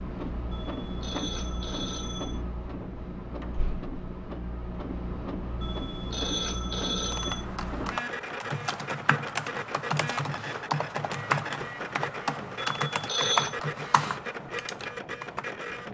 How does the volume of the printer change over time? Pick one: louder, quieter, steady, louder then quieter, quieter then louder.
steady.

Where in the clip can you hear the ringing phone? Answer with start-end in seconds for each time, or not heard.
0.5-2.4, 5.6-7.5, 12.6-13.6.